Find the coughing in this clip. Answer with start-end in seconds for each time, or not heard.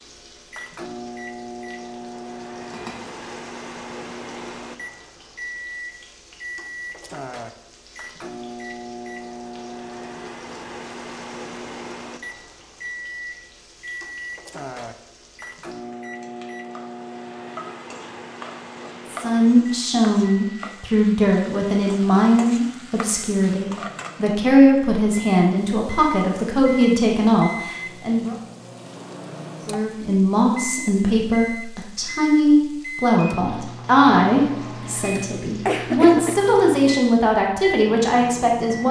34.8-36.4.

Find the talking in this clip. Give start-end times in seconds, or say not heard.
19.1-28.4, 29.6-38.8.